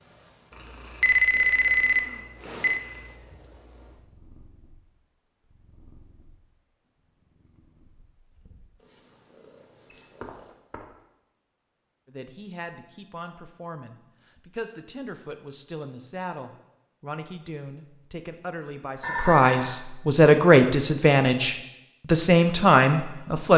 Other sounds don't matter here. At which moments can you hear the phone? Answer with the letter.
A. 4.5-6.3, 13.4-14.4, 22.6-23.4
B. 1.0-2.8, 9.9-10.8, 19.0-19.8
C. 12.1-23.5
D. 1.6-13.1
B.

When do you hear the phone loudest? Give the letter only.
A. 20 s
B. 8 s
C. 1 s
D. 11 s
C.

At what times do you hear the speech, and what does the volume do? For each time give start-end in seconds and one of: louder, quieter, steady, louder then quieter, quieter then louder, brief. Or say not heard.
12.1-23.5 louder.